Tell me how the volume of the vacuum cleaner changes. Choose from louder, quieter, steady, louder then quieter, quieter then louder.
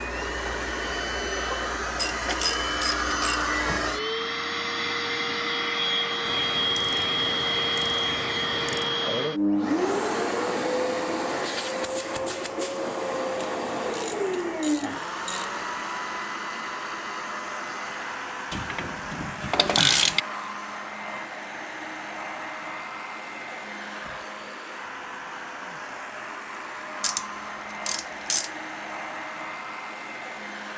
quieter.